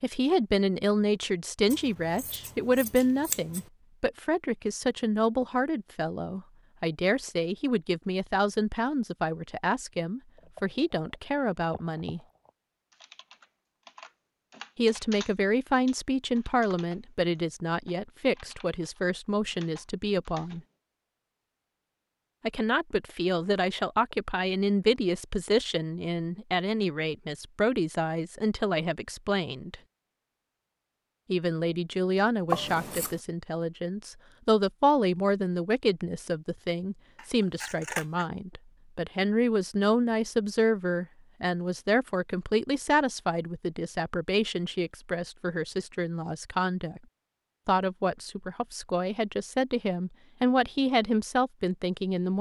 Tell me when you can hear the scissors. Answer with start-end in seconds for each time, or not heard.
1.7-3.6, 32.5-33.2, 37.1-38.2.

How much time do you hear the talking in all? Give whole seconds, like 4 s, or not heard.
46 s.